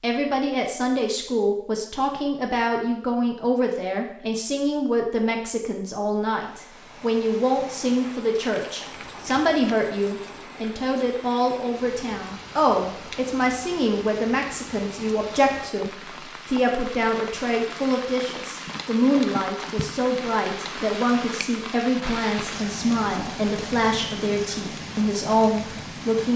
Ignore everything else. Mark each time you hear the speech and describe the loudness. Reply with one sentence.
The speech can be heard from 0.0 to 26.3 s, at a steady volume.